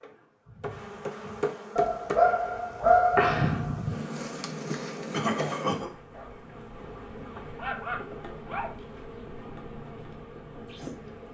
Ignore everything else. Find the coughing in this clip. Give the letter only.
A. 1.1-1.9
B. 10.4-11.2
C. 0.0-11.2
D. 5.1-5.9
D.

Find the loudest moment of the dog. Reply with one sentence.
The loudest moment of the dog is at 3 seconds.